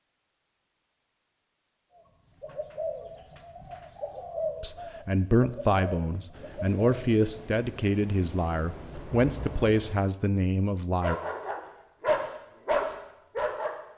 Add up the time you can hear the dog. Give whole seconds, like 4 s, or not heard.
3 s.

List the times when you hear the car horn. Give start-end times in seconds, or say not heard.
not heard.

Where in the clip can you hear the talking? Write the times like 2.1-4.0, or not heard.
4.6-11.2.